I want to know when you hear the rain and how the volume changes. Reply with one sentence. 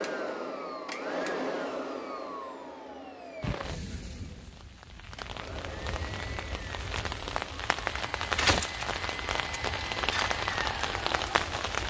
The rain can be heard from 3.4 to 11.8 s, getting louder.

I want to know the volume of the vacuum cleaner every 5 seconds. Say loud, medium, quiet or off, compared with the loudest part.
loud, medium, loud.